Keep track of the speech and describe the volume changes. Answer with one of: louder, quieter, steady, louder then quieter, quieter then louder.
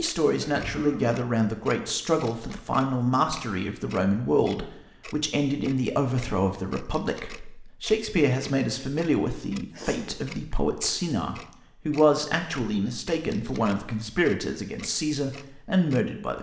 steady.